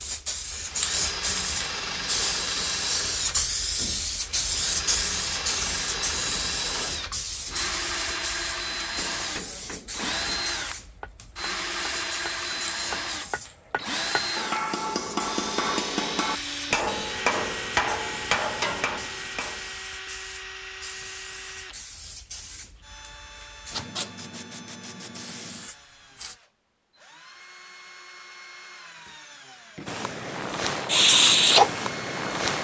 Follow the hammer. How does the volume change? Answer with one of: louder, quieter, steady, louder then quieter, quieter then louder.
louder.